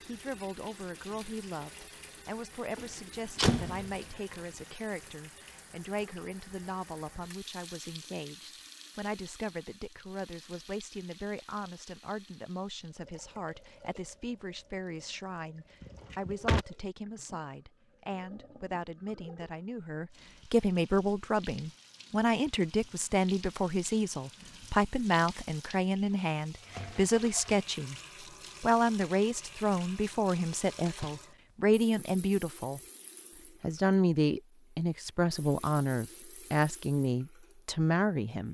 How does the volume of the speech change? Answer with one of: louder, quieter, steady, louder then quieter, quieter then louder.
louder.